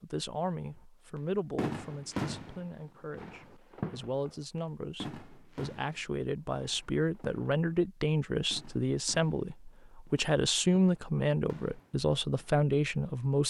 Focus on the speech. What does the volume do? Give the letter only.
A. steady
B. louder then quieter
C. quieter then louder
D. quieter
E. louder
E.